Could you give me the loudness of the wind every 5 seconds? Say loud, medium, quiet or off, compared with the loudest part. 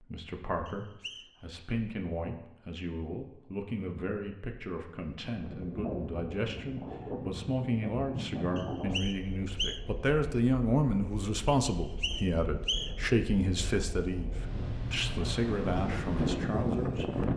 off, medium, medium, loud.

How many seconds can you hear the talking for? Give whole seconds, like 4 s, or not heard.
17 s.